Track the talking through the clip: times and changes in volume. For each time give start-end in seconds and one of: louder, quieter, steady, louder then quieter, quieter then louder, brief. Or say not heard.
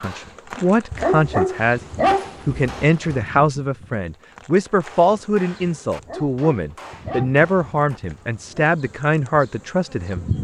0.0-10.2 steady.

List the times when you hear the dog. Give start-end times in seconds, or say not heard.
0.9-3.2, 6.0-8.7.